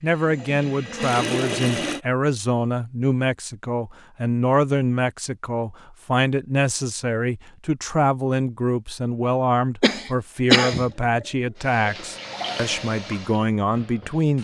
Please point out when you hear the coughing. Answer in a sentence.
The coughing can be heard from 9.8 to 10.8 s.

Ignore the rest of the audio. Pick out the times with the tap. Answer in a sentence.
You can hear the tap from 0.0 to 2.0 s and from 10.8 to 14.3 s.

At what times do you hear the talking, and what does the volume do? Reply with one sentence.
The talking can be heard from 0.0 to 14.3 s, at a steady volume.